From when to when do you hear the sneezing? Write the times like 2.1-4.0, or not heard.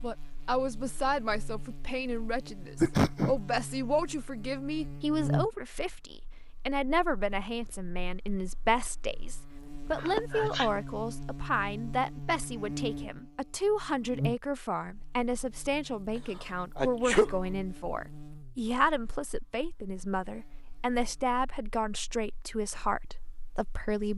2.8-3.4, 9.9-10.8, 16.8-17.4.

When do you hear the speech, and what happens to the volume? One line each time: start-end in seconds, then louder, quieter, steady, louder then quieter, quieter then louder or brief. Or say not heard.
0.0-24.1 steady.